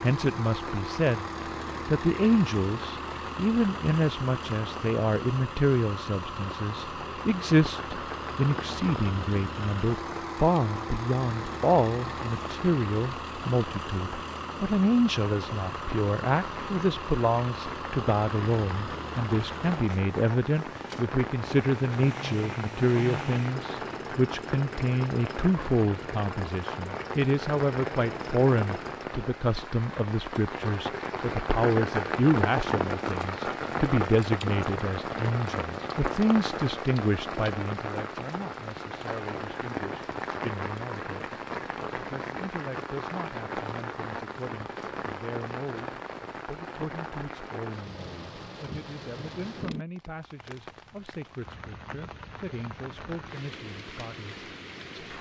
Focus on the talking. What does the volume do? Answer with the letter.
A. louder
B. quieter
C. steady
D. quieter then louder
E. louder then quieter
B.